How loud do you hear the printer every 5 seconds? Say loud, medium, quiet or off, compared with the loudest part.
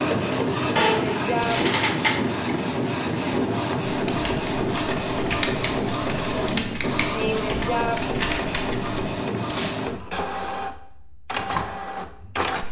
loud, loud, medium.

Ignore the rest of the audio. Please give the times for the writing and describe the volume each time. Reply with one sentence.
You can't hear the writing here.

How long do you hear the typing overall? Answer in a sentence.
You can hear the typing for 5 seconds altogether.